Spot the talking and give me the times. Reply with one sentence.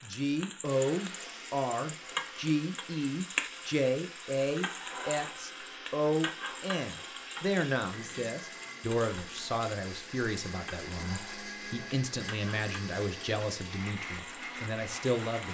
You can hear the talking from 0.0 to 15.4 s.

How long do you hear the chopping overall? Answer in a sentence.
The chopping can't be heard in this clip.